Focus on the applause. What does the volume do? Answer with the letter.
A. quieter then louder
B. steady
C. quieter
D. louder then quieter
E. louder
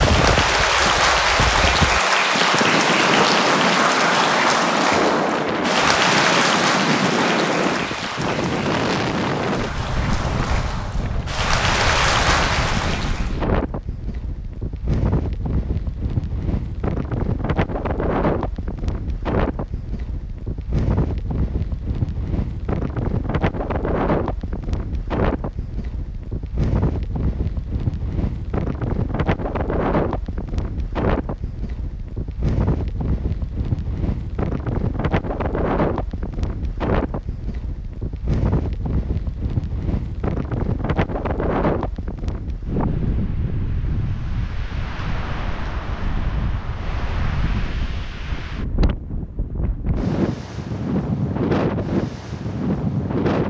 A.